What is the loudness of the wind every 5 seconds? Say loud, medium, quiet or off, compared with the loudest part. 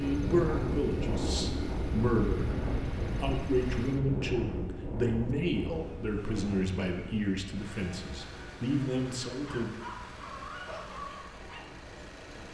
loud, medium, quiet.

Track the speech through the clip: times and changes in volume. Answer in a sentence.
You can hear the speech from 0.0 to 9.8 s, at a steady volume.